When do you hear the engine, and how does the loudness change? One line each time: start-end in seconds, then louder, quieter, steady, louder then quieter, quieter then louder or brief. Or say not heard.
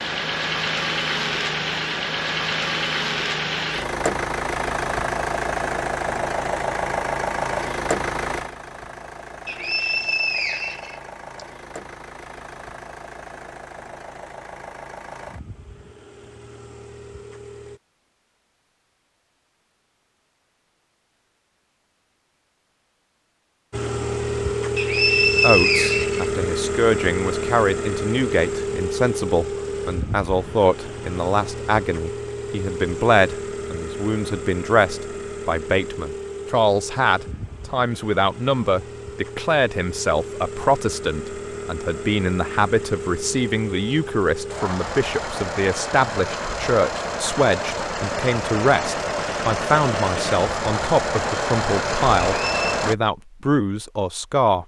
0.0-17.8 quieter
23.7-53.0 quieter then louder.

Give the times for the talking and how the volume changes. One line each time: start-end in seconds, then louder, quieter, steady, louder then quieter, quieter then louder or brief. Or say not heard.
25.4-54.6 steady.